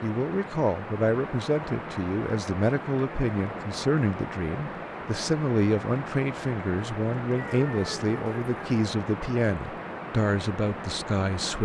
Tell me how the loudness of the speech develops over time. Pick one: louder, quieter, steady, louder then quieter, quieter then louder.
steady.